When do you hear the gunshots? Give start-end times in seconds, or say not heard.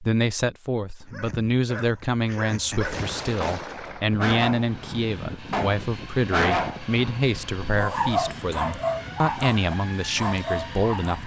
2.8-4.2.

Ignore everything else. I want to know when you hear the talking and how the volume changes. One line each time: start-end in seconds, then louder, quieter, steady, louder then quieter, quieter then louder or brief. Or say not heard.
0.0-11.2 steady.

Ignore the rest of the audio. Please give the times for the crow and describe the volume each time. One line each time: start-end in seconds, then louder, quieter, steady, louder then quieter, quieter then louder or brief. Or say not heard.
not heard.